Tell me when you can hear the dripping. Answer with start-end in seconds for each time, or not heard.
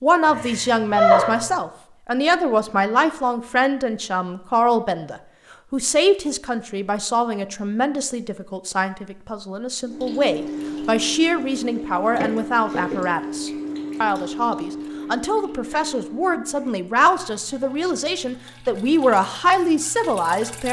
9.8-20.6.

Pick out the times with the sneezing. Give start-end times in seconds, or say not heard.
0.2-1.4.